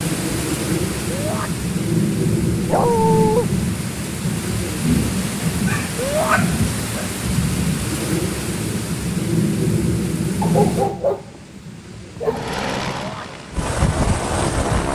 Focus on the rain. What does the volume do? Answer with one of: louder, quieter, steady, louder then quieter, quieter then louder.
quieter.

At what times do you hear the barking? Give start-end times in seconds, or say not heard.
2.6-3.5, 5.5-7.1, 10.4-12.4.